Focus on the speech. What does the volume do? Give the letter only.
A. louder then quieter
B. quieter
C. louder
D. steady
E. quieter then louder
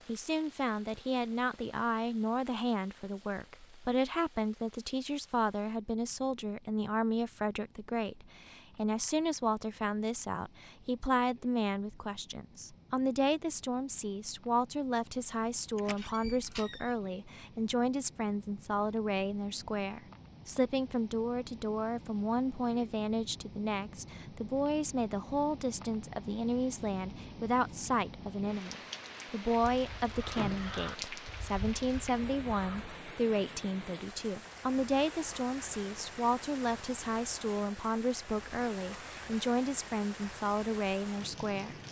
D.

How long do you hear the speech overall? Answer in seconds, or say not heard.
42 s.